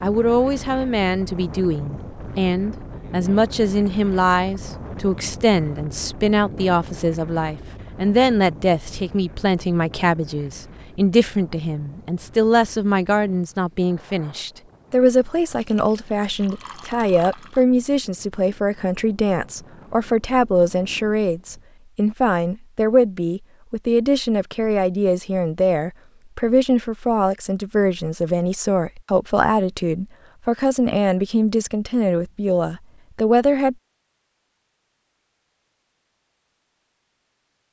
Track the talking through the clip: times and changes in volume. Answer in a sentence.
You can hear the talking from 0.0 to 33.8 s, at a steady volume.